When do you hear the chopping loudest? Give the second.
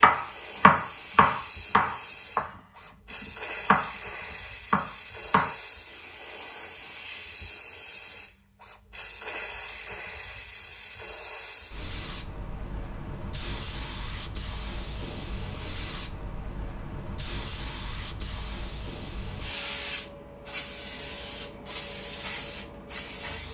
1 s.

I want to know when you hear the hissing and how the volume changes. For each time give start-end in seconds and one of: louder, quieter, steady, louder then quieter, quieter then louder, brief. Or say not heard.
0.0-23.4 steady.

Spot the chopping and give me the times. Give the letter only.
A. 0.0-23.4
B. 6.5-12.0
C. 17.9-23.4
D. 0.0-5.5
D.